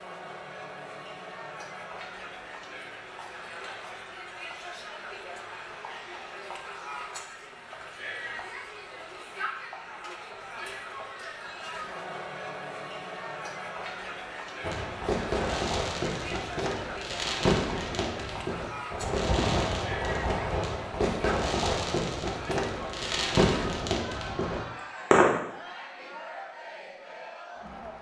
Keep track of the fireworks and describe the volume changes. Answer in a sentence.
The volume of the fireworks stays about the same.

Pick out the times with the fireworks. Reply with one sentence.
You can hear the fireworks from 14.6 to 25.4 s.